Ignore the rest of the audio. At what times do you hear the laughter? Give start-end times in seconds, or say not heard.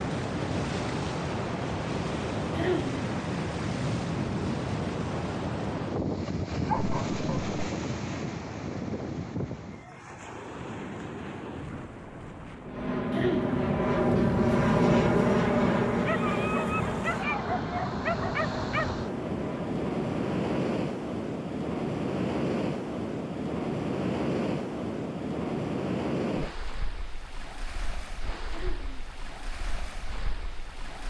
2.5-3.0, 13.1-13.6, 28.5-29.1.